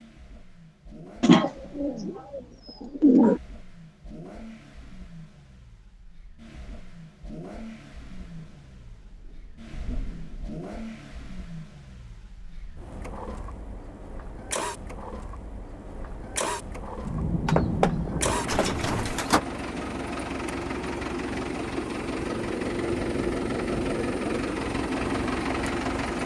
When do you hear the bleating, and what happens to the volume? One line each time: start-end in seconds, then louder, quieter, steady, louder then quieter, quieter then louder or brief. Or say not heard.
not heard.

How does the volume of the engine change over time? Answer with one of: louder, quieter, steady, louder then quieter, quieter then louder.
louder.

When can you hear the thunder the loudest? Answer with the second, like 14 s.
18 s.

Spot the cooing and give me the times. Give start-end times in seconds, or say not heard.
1.2-3.4, 17.4-19.4.